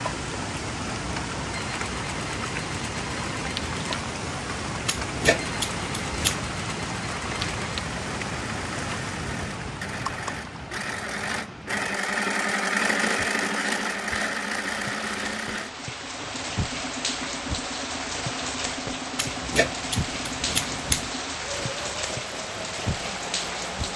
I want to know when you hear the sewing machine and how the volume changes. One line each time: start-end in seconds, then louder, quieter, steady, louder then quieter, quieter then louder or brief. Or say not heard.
0.0-23.9 louder then quieter.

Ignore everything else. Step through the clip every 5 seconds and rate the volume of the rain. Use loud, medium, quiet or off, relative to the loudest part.
loud, loud, medium, loud, loud.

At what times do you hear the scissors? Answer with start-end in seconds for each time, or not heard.
4.8-6.5, 19.1-21.1.